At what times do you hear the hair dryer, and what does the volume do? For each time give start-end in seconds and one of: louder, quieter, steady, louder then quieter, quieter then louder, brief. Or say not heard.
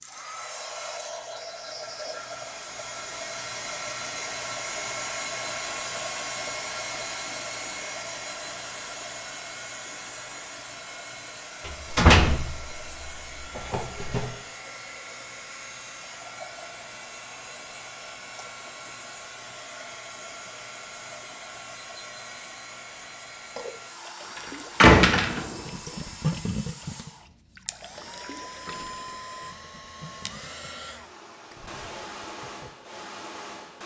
0.0-33.8 quieter.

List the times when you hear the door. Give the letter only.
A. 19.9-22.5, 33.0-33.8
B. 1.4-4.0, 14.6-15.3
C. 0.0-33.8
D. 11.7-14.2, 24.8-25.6
D.